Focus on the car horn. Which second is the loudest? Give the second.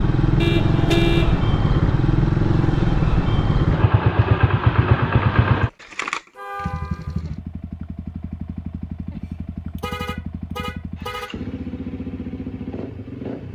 1 s.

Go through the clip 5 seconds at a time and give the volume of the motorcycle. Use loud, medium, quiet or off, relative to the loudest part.
loud, medium, quiet.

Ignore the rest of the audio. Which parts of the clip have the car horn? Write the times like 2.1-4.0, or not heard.
0.4-1.4, 6.3-7.2, 9.6-11.3.